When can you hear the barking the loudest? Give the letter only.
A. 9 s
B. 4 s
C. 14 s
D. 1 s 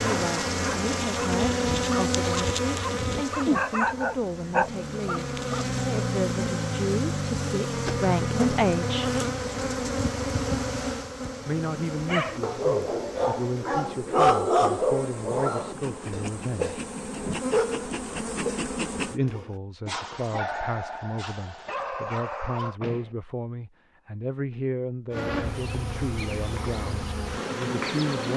C.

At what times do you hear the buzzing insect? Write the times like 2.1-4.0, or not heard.
0.0-19.2, 25.1-28.3.